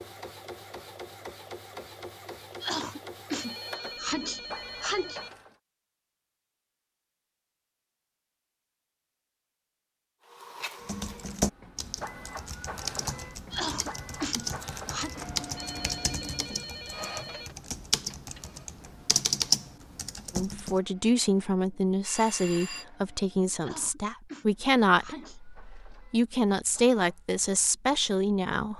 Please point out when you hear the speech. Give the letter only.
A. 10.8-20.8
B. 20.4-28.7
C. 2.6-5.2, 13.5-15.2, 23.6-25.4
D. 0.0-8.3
B.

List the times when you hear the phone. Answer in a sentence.
The phone can be heard from 3.4 to 5.3 s, from 15.6 to 17.6 s and from 22.1 to 22.9 s.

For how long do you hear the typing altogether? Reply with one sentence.
The typing can be heard for 10 seconds in total.